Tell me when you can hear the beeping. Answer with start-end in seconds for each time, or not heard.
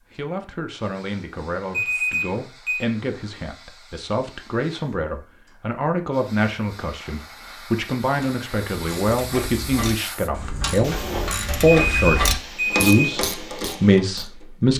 1.7-2.9, 11.7-12.9.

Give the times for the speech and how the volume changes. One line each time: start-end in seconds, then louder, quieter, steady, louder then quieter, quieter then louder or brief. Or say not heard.
0.1-14.7 louder.